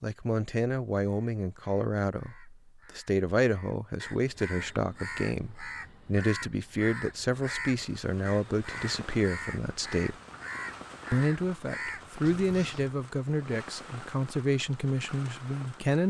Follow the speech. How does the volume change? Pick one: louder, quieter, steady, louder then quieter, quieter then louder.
steady.